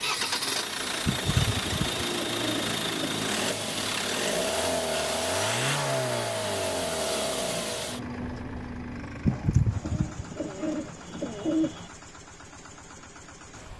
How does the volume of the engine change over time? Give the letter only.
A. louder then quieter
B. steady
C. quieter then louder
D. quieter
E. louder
D.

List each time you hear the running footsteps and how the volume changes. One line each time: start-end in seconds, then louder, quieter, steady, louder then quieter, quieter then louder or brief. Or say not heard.
not heard.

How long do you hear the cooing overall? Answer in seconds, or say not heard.
5 s.